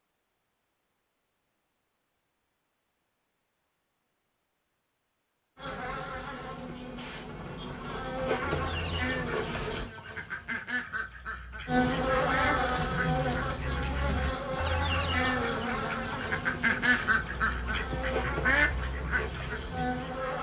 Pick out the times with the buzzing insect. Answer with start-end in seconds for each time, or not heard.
5.5-9.9, 11.7-20.3.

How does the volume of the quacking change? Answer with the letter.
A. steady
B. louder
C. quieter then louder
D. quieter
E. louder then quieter
B.